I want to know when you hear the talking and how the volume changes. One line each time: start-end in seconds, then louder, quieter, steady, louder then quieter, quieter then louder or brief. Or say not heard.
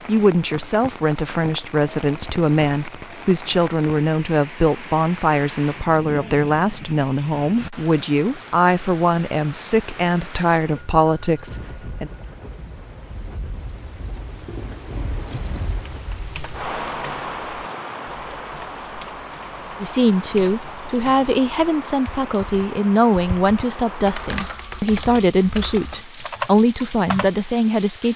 0.1-12.1 steady
19.8-28.1 steady.